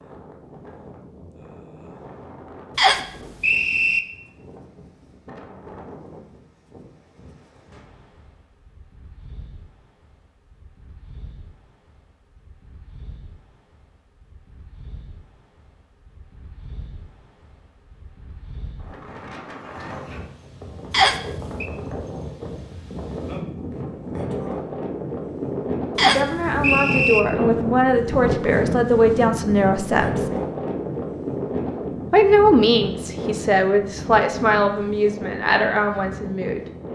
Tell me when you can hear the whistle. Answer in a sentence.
The whistle can be heard from 2.8 to 4.0 s, from 20.9 to 21.6 s and from 25.9 to 27.2 s.